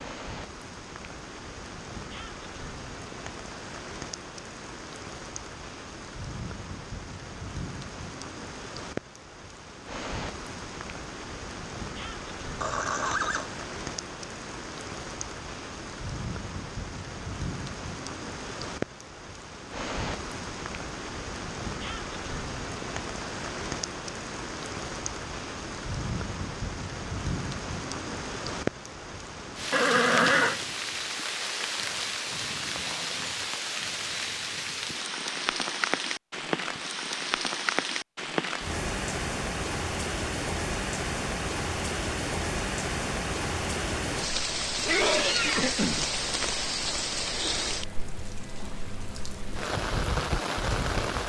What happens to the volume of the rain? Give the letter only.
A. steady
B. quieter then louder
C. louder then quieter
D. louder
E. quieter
D.